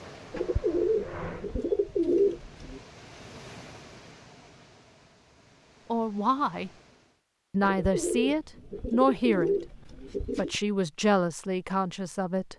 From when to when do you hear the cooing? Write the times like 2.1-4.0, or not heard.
0.3-2.8, 7.6-10.6.